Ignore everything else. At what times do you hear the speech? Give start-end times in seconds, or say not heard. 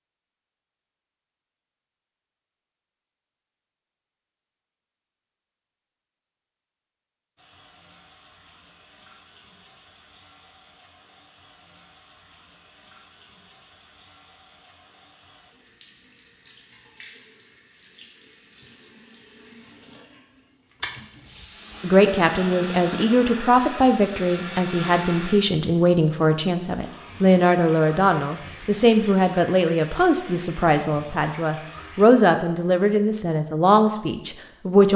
21.8-34.9.